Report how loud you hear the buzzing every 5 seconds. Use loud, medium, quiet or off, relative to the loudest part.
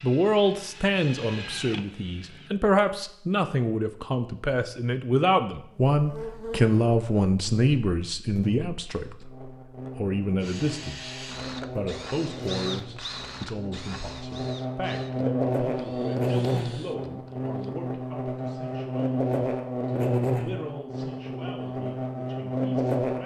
off, medium, medium, loud, loud.